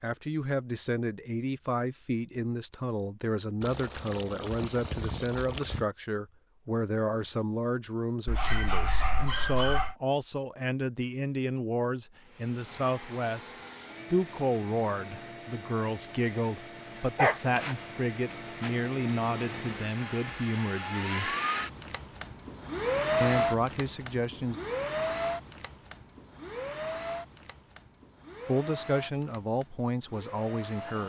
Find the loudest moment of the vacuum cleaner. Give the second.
23 s.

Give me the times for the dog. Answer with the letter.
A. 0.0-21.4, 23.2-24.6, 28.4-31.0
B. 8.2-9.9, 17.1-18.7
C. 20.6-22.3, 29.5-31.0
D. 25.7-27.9
B.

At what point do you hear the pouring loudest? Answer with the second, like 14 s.
4 s.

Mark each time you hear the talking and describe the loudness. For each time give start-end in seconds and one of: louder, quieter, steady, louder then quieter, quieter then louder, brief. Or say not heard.
0.0-21.4 steady
23.2-24.6 brief
28.4-31.0 brief.